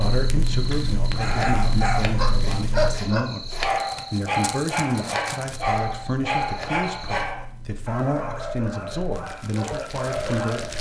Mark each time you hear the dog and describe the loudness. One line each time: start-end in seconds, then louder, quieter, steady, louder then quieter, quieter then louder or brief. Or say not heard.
1.1-10.7 quieter.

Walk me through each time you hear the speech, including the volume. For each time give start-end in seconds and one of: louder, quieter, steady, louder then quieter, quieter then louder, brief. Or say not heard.
0.0-10.7 steady.